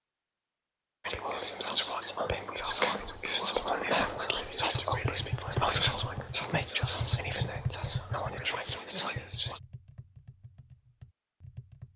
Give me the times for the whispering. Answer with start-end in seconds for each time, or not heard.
1.1-9.6.